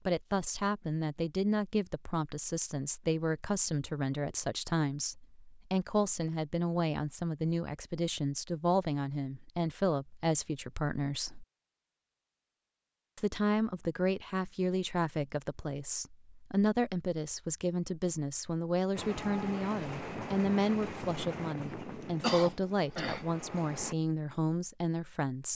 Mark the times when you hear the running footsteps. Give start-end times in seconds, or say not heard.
not heard.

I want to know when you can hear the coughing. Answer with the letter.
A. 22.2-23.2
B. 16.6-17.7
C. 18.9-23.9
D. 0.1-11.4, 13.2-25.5
A.